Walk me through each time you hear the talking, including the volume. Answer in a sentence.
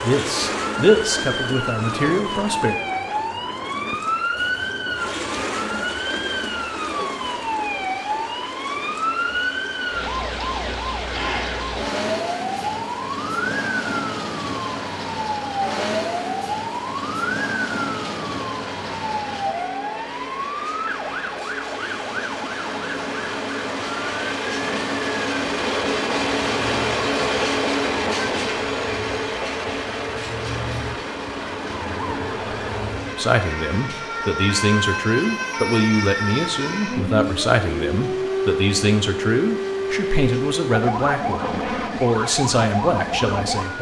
You can hear the talking briefly from 0.0 to 2.8 s; and from 33.1 to 43.7 s, at a steady volume.